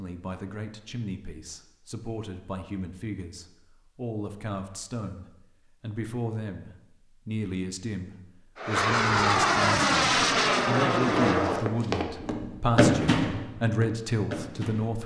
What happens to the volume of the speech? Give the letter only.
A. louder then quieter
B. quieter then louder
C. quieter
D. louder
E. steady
D.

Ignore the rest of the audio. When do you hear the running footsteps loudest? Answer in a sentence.
The loudest moment of the running footsteps is at 13 seconds.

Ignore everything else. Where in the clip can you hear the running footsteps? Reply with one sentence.
The running footsteps can be heard from 11.3 to 15.0 s.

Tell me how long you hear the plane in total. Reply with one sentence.
You can hear the plane for 3 seconds altogether.